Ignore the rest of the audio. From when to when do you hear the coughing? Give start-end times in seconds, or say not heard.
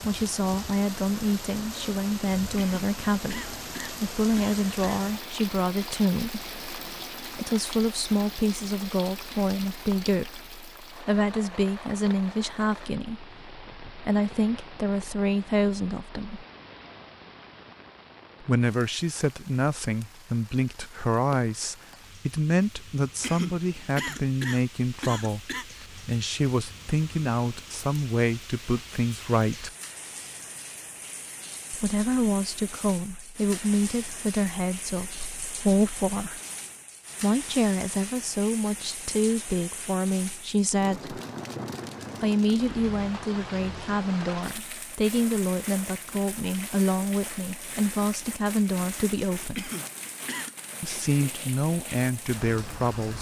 2.5-5.0, 23.2-25.6, 49.5-50.5.